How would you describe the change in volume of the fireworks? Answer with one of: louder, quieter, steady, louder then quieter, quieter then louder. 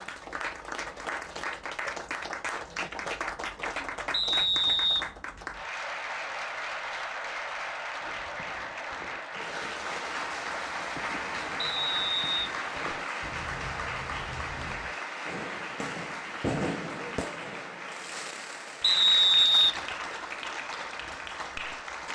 louder.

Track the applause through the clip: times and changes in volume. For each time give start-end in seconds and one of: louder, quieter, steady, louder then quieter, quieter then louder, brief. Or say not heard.
0.0-22.1 steady.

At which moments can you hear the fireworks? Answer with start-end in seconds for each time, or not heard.
8.0-19.0.